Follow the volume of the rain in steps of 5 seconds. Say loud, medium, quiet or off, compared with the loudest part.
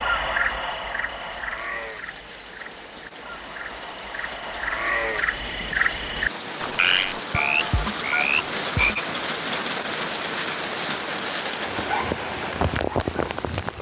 quiet, loud, loud.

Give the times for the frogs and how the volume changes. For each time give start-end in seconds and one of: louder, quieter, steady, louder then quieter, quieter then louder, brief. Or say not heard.
0.0-9.1 quieter then louder.